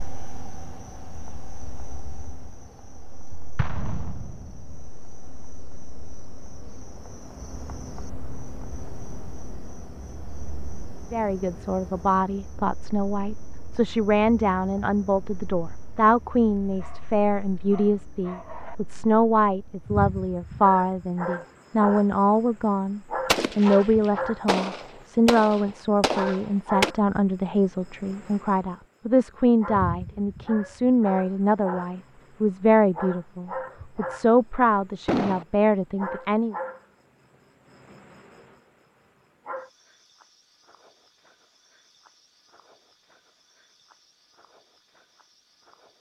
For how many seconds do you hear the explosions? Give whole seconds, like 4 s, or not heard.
5 s.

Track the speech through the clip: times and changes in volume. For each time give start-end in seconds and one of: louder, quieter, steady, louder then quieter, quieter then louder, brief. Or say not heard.
11.1-36.5 steady.